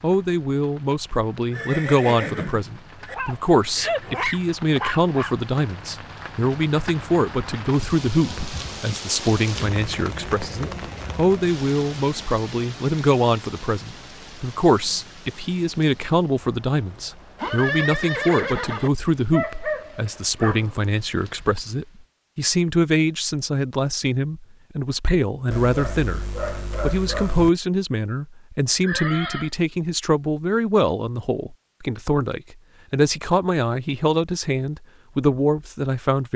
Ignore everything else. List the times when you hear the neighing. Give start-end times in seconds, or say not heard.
1.5-3.1, 17.4-18.9, 28.8-29.5.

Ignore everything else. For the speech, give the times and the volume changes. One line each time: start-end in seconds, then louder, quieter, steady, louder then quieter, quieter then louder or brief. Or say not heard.
0.0-36.3 steady.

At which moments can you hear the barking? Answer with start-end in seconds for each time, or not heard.
3.0-5.3, 19.3-21.4, 25.5-27.5.